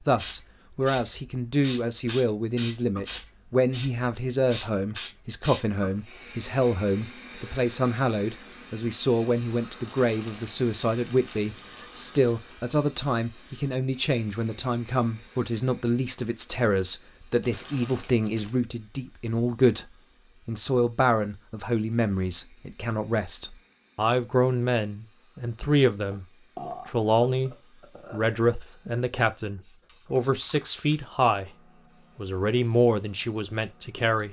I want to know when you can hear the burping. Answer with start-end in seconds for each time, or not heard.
26.1-28.4.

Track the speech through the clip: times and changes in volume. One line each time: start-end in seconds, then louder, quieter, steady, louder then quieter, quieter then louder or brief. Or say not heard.
0.0-31.6 steady
32.1-34.2 brief.